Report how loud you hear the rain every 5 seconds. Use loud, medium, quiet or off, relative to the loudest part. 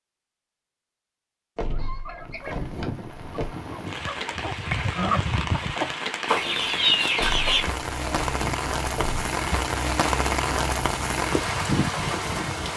medium, loud, loud.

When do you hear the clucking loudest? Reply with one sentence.
The volume of the clucking peaks at 7 seconds.